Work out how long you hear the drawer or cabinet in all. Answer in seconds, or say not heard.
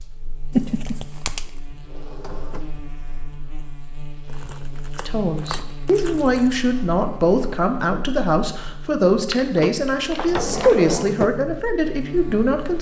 4 s.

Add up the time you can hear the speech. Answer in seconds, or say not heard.
8 s.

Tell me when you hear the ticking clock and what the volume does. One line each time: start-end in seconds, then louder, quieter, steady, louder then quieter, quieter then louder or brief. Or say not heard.
not heard.